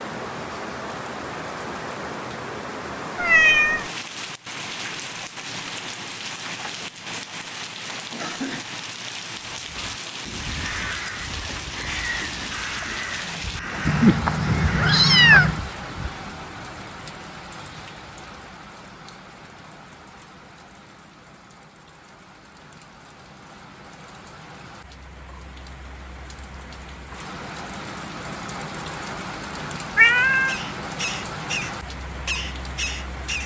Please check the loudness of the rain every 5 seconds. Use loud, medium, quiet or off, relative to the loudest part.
loud, loud, loud, medium, quiet, loud, loud.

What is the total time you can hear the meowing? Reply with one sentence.
You can hear the meowing for 3 seconds altogether.